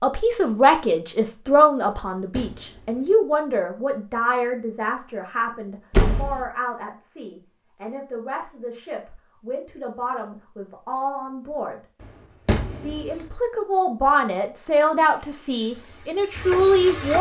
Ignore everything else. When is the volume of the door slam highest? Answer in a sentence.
The loudest moment of the door slam is at 6 seconds.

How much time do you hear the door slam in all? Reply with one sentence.
You can hear the door slam for 2 seconds altogether.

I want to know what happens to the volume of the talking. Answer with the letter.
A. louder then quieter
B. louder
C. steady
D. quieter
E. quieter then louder
E.